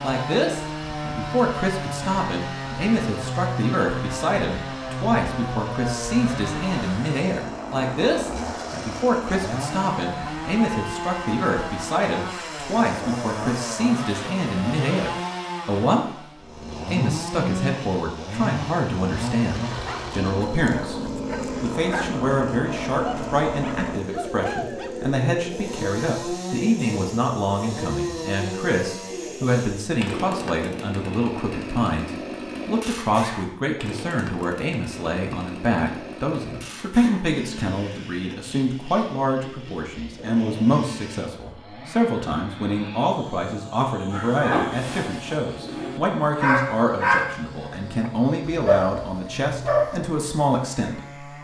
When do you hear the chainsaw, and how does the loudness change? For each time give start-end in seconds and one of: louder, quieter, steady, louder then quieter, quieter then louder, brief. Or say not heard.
0.0-51.4 quieter.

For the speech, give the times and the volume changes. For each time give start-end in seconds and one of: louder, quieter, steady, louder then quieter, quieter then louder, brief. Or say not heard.
0.0-16.1 steady
16.9-51.4 steady.